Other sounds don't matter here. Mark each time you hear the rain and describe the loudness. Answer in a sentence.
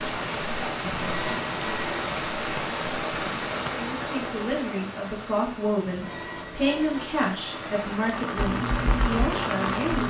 You can hear the rain from 0.0 to 10.0 s, getting quieter then louder.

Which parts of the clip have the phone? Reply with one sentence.
You can hear the phone from 0.8 to 2.2 s and from 5.8 to 7.3 s.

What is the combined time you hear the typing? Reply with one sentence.
The typing can be heard for 2 seconds in total.